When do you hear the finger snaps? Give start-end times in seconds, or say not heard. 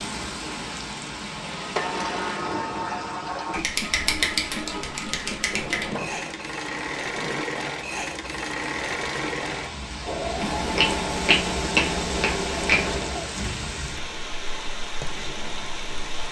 3.5-5.9, 10.4-13.1.